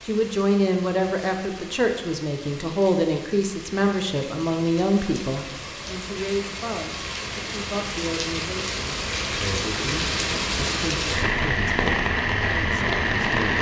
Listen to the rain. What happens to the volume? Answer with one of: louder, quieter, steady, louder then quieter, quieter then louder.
louder.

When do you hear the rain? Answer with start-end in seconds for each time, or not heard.
0.0-13.5.